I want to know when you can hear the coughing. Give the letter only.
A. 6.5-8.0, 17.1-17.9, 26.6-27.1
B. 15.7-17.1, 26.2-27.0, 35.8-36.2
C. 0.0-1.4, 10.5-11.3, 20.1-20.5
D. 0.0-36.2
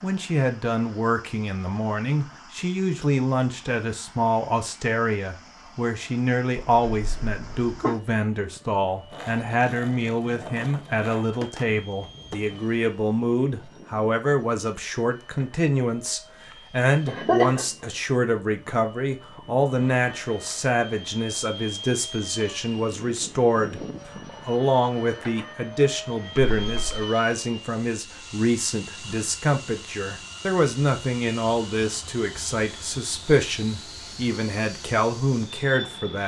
A.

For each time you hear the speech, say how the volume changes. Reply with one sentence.
The speech can be heard from 0.0 to 36.2 s, at a steady volume.